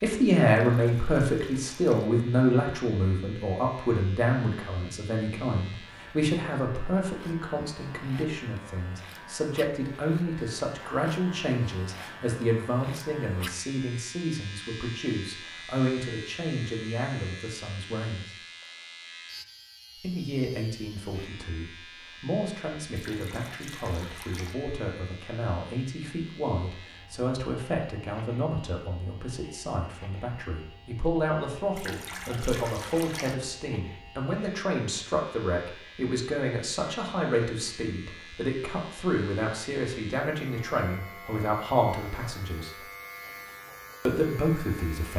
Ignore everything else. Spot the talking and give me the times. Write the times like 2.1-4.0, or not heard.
0.0-18.3, 20.0-42.7, 44.0-45.1.